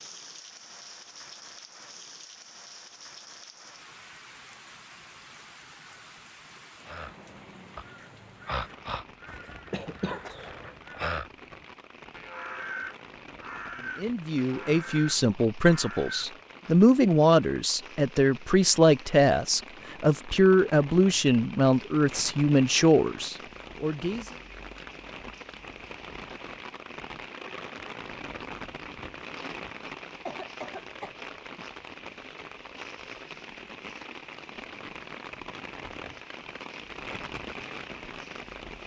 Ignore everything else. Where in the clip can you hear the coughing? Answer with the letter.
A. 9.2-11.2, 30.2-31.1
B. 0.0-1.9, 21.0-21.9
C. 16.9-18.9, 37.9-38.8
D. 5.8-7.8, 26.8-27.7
A.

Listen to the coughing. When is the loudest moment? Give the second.
10 s.